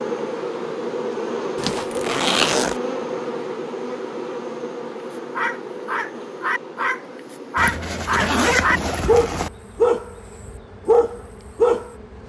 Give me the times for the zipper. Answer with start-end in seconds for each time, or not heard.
1.6-2.8, 7.5-9.5.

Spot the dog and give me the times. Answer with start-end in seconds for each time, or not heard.
5.3-11.9.